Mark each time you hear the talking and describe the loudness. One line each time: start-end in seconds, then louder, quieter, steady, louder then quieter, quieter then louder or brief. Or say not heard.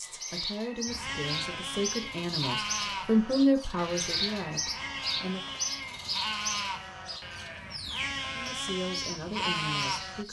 0.0-5.5 louder then quieter
8.3-10.2 brief.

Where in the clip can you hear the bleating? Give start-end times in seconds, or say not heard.
0.8-10.2.